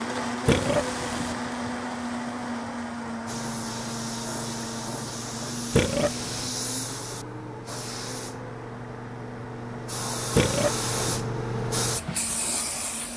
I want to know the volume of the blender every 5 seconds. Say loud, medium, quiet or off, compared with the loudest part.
loud, medium, medium.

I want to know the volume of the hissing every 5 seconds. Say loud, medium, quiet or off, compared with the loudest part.
medium, medium, loud.